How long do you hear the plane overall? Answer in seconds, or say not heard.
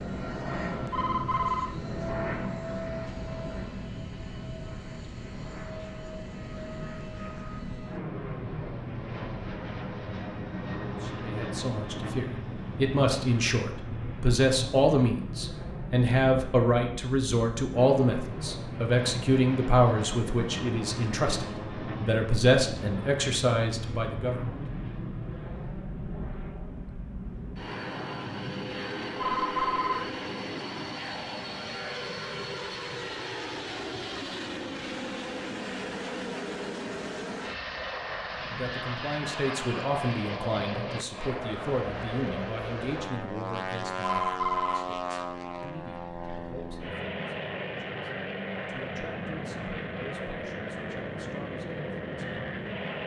53 s.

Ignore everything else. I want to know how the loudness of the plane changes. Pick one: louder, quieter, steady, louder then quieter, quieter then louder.
steady.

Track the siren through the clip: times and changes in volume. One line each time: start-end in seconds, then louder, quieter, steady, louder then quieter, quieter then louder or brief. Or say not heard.
not heard.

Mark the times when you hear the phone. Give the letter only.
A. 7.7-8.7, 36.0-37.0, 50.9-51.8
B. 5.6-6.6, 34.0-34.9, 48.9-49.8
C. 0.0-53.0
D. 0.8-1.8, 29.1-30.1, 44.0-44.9
D.